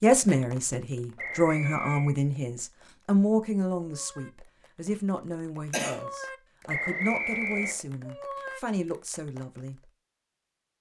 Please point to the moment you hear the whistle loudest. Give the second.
7 s.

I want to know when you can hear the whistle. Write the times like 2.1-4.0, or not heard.
1.1-2.1, 6.7-7.8.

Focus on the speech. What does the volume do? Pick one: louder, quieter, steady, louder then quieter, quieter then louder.
quieter.